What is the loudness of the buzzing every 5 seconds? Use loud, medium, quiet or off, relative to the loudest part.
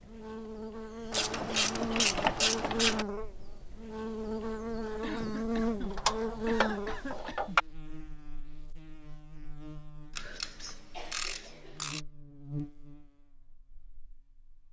loud, loud, medium.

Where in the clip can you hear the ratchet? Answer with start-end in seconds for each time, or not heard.
1.1-3.0, 5.9-7.6, 10.2-12.0.